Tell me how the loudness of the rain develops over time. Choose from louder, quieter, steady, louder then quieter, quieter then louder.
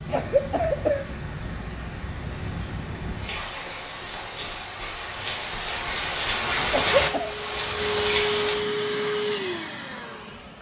louder.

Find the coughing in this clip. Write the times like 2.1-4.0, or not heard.
0.1-1.1, 6.7-7.3.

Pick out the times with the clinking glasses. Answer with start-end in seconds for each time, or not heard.
not heard.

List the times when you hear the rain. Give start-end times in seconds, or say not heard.
0.0-8.6.